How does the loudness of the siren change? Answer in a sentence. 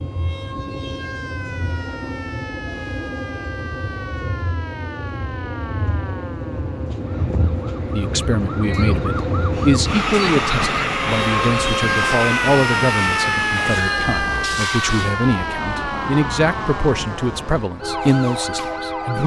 The volume of the siren goes up, then down.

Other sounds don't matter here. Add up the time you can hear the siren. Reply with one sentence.
The siren can be heard for 19 seconds in total.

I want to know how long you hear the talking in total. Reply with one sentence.
The talking can be heard for 11 seconds in total.